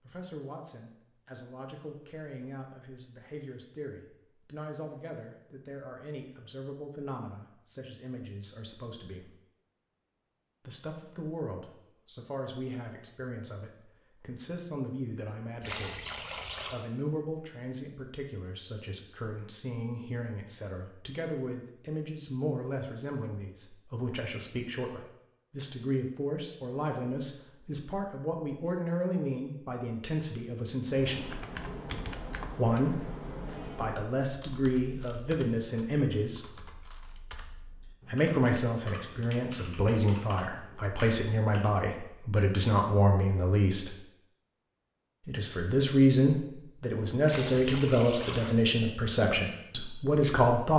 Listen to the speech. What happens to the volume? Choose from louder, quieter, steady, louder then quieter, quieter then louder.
louder.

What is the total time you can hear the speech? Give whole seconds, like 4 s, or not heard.
45 s.